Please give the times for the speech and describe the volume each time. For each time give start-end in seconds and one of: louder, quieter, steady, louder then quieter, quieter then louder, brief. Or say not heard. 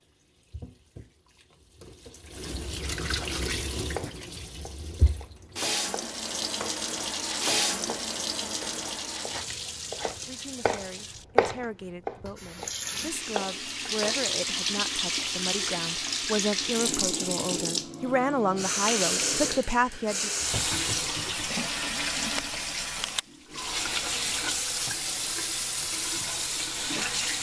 10.2-20.3 louder.